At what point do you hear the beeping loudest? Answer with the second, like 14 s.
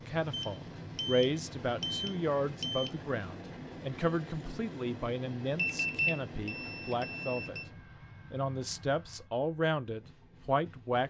6 s.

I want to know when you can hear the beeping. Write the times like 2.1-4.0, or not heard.
0.3-2.9, 5.5-7.7.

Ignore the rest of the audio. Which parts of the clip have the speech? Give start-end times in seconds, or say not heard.
0.1-7.6, 8.3-11.0.